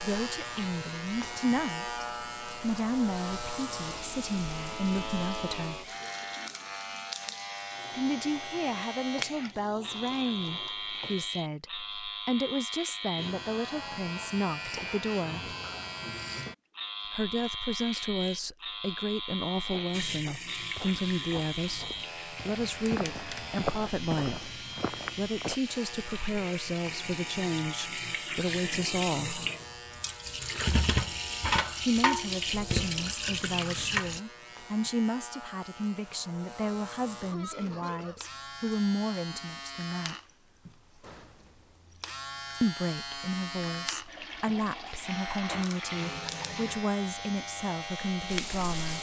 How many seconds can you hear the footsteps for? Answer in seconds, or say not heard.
6 s.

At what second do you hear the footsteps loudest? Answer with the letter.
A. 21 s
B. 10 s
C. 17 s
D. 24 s
D.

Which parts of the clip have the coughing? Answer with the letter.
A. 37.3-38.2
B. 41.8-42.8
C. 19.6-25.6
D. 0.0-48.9
A.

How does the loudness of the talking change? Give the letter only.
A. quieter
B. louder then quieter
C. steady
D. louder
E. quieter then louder
C.